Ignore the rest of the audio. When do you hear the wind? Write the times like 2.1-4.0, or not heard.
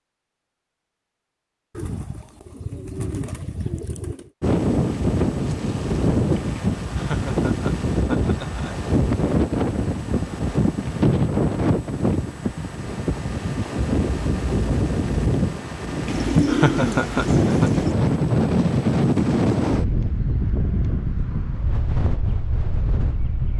4.4-23.5.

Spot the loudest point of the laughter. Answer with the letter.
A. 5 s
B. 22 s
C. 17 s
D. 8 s
C.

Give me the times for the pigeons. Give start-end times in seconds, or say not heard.
1.8-4.3, 16.1-18.0.